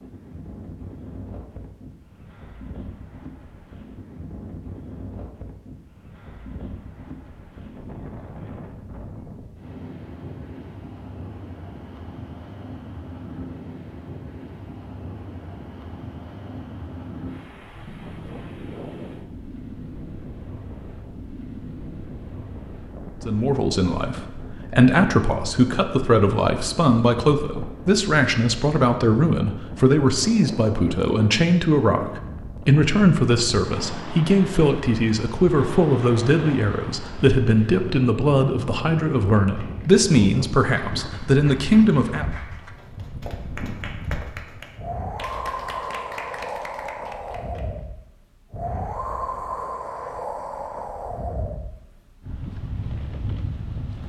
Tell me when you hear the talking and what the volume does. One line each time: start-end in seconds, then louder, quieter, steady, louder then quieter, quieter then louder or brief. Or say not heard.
23.2-42.2 steady.